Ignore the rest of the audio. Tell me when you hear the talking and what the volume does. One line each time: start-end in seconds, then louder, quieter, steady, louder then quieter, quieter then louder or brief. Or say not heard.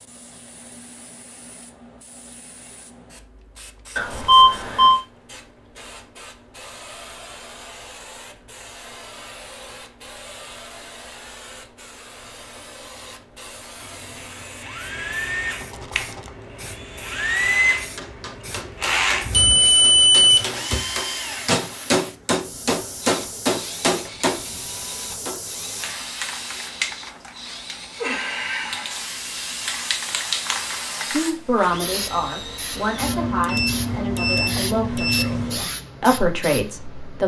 31.1-37.2 quieter then louder.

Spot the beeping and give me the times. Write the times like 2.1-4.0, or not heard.
4.0-5.0, 19.3-20.6, 33.0-35.6.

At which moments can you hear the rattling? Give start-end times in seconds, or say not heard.
15.6-16.4.